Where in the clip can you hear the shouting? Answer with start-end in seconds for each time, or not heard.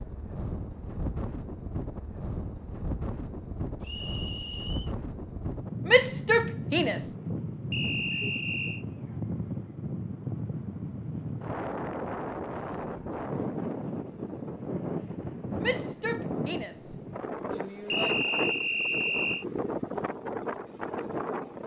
5.8-7.1, 15.6-18.1.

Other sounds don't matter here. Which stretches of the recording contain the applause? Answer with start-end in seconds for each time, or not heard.
not heard.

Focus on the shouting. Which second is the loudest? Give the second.
6 s.